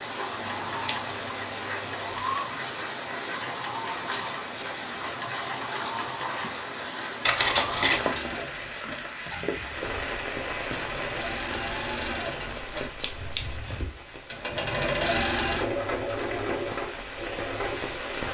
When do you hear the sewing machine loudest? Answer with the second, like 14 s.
15 s.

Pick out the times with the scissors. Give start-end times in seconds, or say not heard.
0.3-2.4, 7.2-8.1, 12.7-13.6.